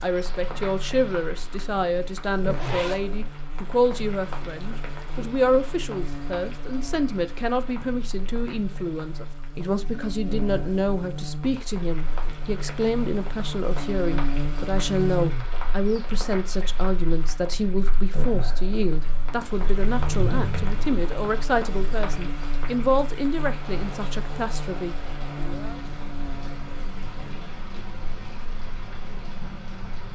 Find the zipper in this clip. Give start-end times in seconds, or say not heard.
2.5-3.0, 20.1-21.0.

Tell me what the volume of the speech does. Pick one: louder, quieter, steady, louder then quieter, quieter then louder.
steady.